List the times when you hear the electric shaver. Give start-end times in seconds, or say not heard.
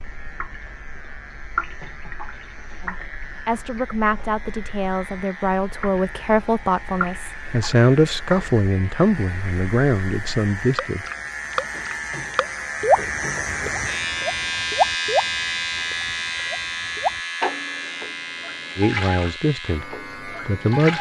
0.0-20.9.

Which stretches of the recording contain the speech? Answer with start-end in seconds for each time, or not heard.
2.8-11.1, 18.8-20.9.